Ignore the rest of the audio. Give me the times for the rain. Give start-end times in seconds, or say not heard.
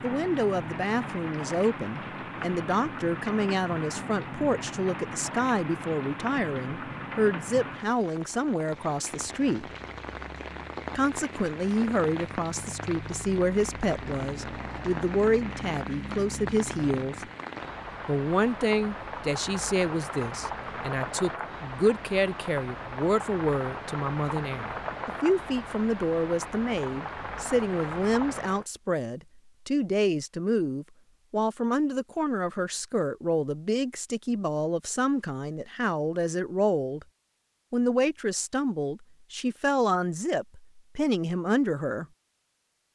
0.0-28.6.